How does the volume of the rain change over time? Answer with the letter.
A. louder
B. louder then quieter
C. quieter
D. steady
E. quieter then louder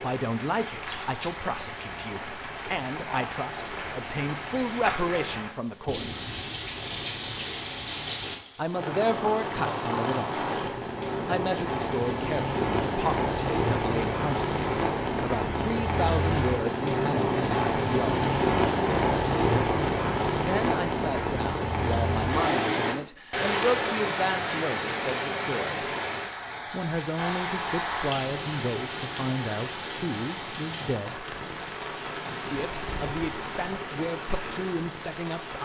B.